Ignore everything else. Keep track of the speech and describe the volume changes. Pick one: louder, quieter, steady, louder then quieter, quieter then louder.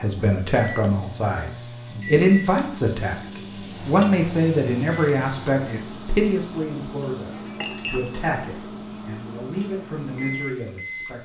quieter.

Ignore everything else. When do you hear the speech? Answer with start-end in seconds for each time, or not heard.
0.0-11.2.